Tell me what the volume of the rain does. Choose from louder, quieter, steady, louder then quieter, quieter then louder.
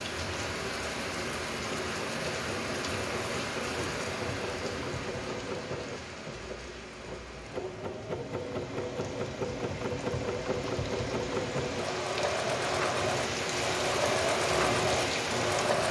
quieter then louder.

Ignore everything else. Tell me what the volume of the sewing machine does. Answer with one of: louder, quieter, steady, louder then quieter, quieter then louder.
louder.